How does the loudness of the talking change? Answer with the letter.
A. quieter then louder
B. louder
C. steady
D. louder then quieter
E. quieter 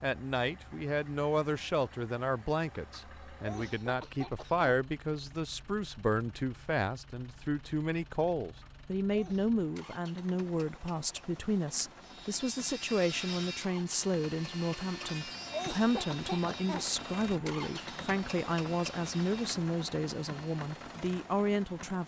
C.